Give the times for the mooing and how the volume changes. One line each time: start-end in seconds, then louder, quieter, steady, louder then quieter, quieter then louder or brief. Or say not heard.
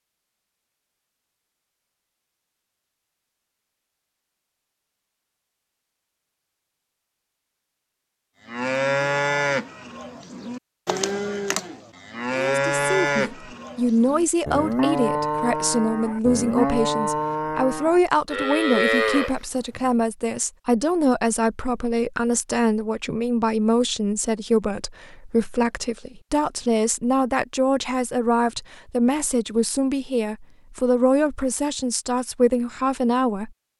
8.4-19.8 steady.